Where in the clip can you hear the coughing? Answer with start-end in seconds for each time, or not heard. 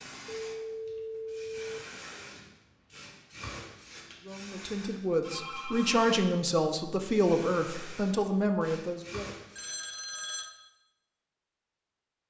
not heard.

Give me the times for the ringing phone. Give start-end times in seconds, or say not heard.
0.2-1.9, 5.2-6.1, 9.5-10.4.